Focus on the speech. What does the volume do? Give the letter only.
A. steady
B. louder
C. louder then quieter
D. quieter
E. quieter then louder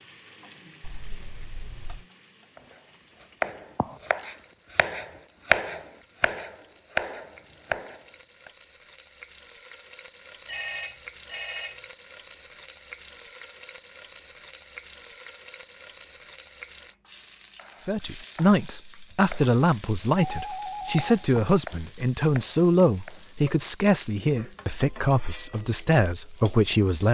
A.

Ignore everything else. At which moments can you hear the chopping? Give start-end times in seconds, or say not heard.
2.5-8.5, 17.6-23.2.